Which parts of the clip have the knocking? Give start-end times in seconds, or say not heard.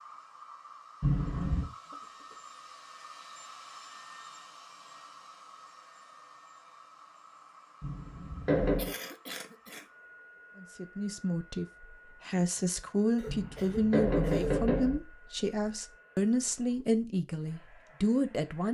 1.0-1.7, 7.8-8.9, 13.2-15.0.